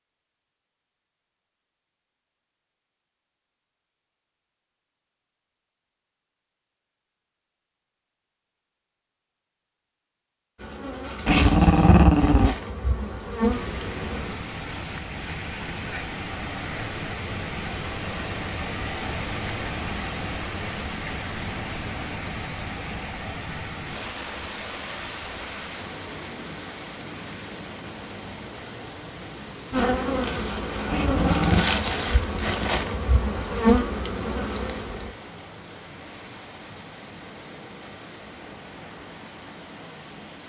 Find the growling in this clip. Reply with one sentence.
The growling can be heard from 11.2 to 12.6 s and from 30.9 to 31.6 s.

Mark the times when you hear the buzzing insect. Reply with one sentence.
You can hear the buzzing insect from 10.6 to 14.3 s and from 29.7 to 35.1 s.